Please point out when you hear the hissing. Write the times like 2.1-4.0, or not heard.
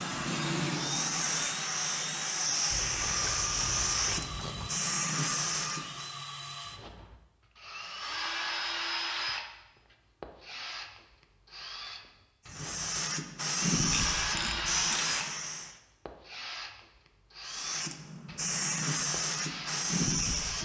0.0-6.2, 12.4-15.8, 17.4-20.6.